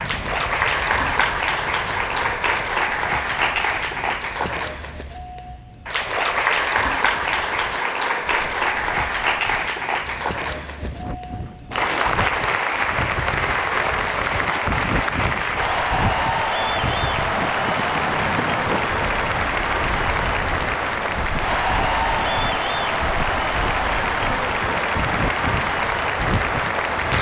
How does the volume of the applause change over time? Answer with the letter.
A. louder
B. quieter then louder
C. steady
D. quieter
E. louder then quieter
C.